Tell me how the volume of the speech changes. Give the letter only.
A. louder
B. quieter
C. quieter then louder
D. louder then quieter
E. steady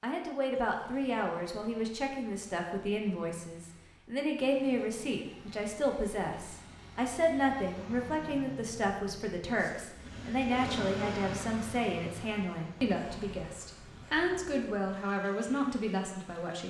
E.